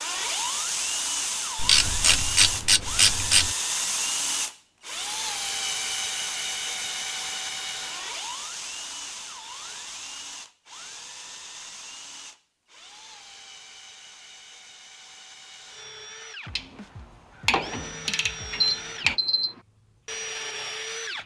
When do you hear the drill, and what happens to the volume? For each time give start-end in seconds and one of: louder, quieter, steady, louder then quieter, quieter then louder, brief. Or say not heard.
0.0-21.2 quieter then louder.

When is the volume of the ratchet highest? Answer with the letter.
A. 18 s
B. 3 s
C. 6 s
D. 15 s
B.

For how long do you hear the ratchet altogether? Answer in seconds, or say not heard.
5 s.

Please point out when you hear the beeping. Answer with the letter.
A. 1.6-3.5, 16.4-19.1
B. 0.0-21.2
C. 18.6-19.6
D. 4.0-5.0
C.